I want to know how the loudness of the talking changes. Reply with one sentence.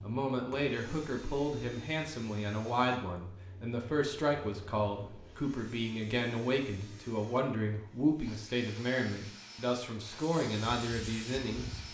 The loudness of the talking stays about the same.